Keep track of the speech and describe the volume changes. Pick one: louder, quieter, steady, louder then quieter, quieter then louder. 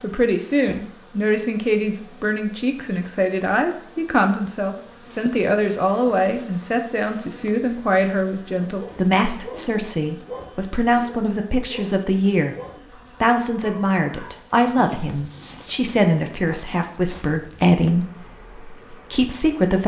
steady.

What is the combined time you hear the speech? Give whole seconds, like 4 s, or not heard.
19 s.